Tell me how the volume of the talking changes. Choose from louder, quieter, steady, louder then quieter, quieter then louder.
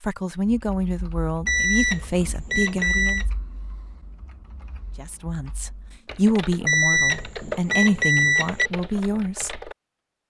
steady.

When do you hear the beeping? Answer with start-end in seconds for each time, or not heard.
1.4-3.2, 6.7-8.7.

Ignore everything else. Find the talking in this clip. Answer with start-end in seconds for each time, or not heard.
0.0-3.2, 5.0-9.6.